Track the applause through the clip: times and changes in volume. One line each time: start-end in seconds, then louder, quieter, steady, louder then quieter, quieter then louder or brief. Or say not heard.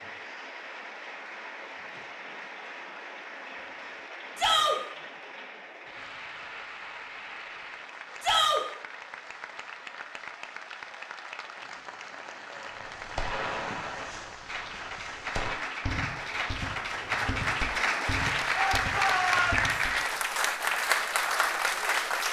0.0-22.2 louder.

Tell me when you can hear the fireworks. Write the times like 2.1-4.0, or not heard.
12.7-19.9.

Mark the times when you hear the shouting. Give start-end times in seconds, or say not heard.
4.3-4.8, 8.2-8.6, 18.6-19.6.